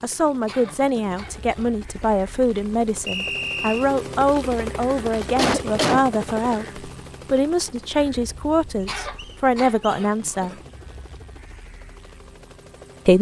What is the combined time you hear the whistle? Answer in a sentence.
You can hear the whistle for 2 seconds altogether.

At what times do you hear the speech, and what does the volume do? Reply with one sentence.
The speech can be heard from 0.0 to 10.6 s, at a steady volume.